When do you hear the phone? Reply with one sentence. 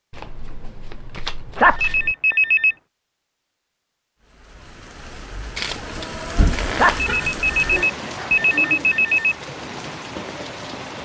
The phone can be heard from 1.6 to 2.8 s and from 6.8 to 9.3 s.